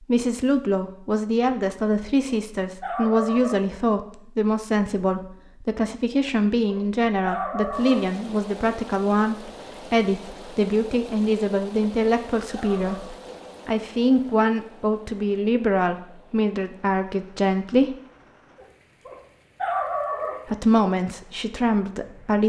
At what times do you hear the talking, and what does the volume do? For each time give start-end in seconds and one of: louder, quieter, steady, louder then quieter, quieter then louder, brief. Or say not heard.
0.0-17.9 steady
20.4-22.4 brief.